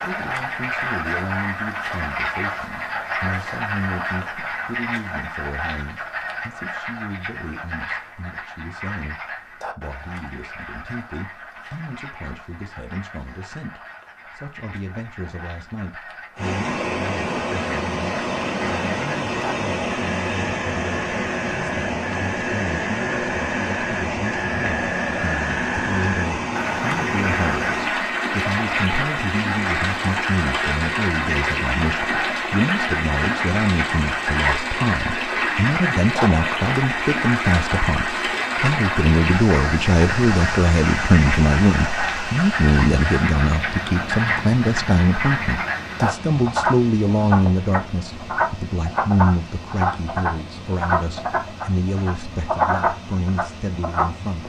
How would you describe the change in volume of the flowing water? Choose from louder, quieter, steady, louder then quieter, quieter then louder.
quieter.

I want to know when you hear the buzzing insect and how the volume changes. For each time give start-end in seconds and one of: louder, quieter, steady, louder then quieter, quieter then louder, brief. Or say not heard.
not heard.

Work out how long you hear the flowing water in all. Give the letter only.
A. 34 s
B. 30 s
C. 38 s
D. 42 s
C.